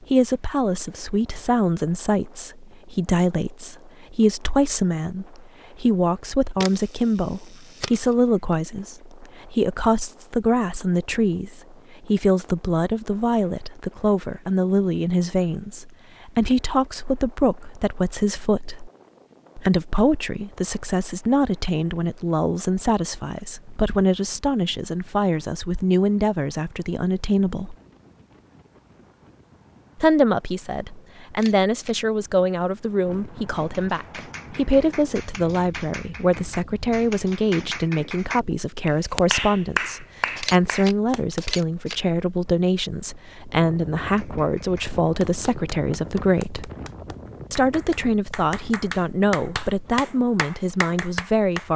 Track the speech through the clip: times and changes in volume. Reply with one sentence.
You can hear the speech from 0.0 to 18.9 s, at a steady volume; from 19.6 to 27.8 s, at a steady volume; from 29.9 to 46.7 s, at a steady volume; and from 47.5 to 51.7 s, at a steady volume.